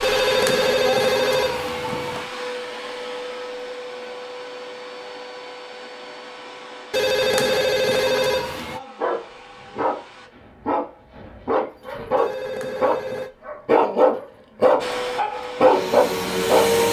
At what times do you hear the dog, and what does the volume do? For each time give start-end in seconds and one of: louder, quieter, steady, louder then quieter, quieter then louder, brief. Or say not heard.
8.9-14.9 louder
15.6-16.8 brief.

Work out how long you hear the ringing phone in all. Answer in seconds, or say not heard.
5 s.